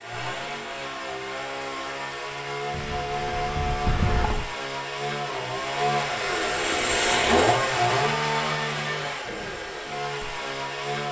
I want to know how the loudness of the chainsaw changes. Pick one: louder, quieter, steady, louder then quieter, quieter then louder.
louder then quieter.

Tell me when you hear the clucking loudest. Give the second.
4 s.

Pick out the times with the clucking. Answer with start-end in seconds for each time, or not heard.
2.7-4.5.